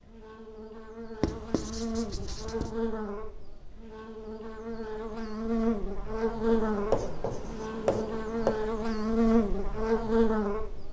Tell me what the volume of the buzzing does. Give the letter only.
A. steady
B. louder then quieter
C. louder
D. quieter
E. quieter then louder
C.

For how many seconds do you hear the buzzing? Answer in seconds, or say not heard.
11 s.